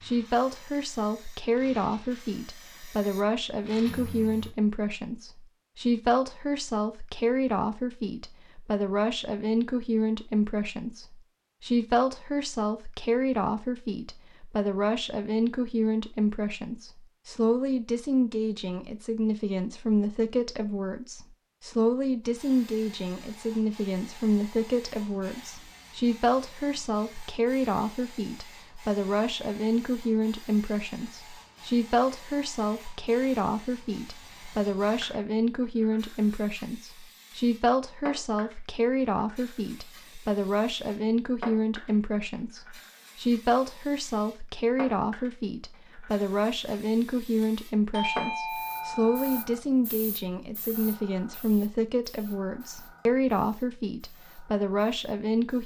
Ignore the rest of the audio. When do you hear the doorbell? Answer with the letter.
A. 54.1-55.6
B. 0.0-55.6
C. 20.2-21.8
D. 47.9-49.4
D.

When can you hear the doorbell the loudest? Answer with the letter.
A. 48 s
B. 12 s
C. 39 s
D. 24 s
A.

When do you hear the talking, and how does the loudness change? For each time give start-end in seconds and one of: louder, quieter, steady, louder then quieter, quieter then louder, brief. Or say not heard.
0.0-55.6 steady.